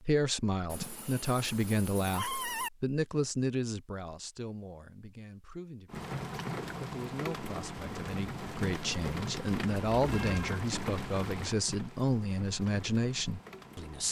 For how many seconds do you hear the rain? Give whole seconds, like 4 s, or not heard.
8 s.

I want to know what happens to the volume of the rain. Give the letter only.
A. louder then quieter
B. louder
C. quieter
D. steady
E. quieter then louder
C.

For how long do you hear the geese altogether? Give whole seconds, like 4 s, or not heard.
not heard.